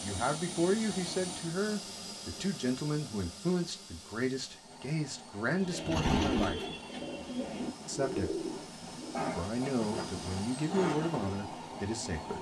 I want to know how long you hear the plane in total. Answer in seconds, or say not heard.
12 s.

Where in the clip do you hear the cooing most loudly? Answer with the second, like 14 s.
6 s.